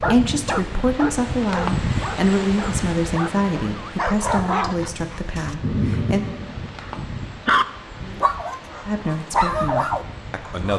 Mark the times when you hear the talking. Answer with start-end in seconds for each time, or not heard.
0.0-6.2, 8.8-10.7.